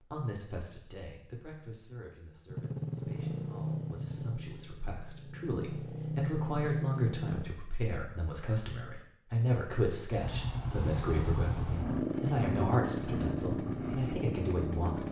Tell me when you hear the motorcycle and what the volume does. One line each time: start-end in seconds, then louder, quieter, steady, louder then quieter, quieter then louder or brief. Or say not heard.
2.5-7.5 quieter then louder
10.1-15.0 steady.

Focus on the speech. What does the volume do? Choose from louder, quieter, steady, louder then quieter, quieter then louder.
louder.